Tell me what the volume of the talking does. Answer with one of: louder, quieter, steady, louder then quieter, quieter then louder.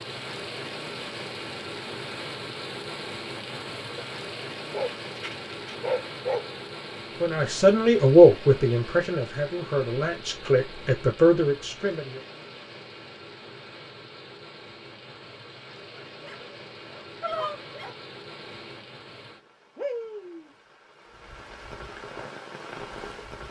quieter then louder.